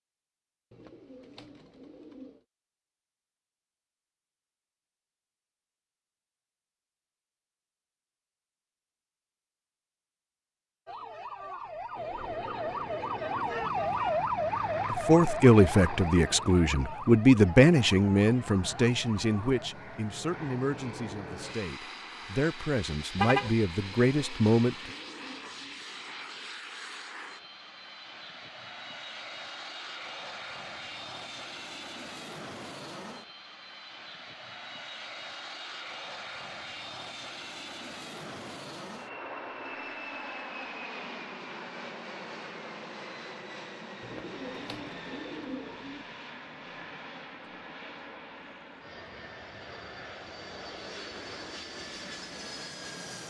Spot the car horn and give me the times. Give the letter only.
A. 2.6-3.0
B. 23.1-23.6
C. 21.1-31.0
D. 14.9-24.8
B.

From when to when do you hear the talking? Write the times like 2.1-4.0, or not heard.
14.9-24.8.